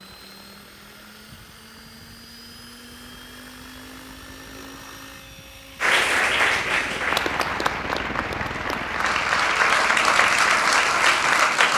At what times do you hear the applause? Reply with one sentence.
The applause can be heard from 5.8 to 11.7 s.